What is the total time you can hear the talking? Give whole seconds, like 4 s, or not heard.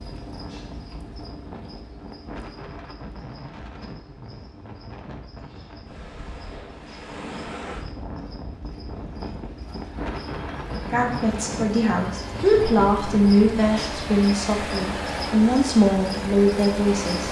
6 s.